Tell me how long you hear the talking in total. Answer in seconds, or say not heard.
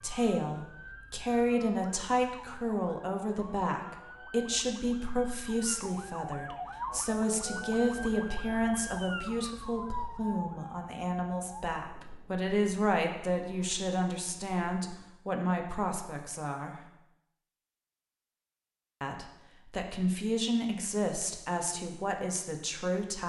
21 s.